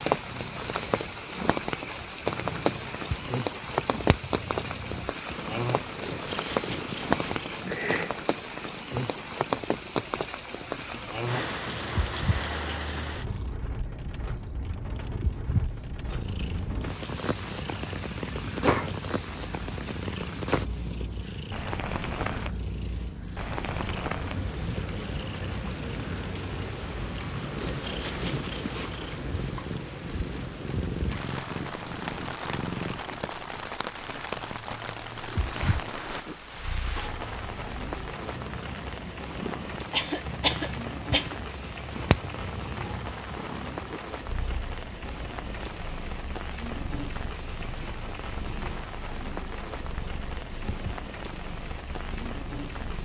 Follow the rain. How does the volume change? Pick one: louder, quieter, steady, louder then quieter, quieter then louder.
quieter.